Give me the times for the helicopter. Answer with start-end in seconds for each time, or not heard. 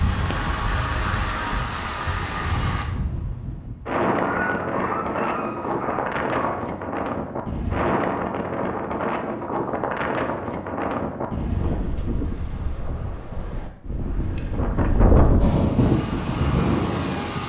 0.0-2.9, 15.8-17.4.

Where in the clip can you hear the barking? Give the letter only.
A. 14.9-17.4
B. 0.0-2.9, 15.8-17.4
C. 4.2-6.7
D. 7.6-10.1
C.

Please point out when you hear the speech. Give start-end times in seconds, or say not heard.
not heard.